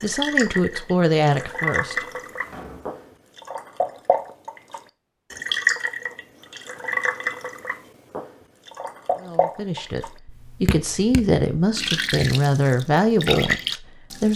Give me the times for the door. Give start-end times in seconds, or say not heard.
2.5-3.0.